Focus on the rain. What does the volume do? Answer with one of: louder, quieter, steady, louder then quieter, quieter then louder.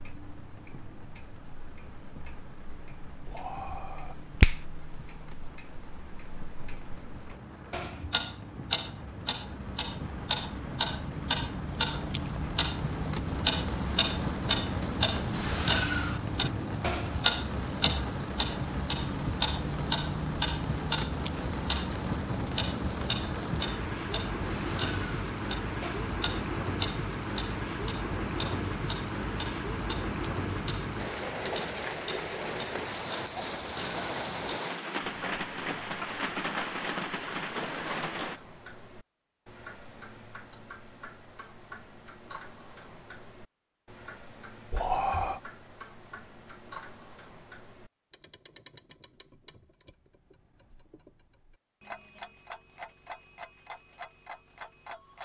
louder.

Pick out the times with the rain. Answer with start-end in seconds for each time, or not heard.
0.0-38.4.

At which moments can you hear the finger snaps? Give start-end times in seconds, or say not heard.
3.2-4.6, 44.7-45.4.